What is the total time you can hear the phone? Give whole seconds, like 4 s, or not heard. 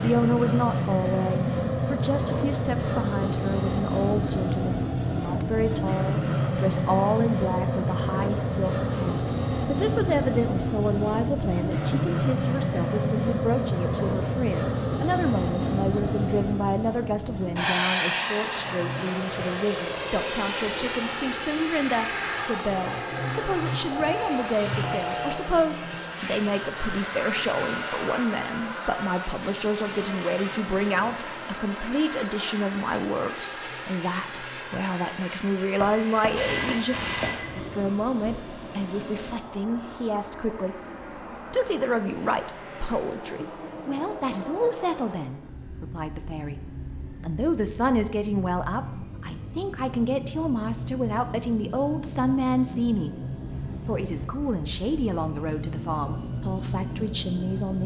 3 s.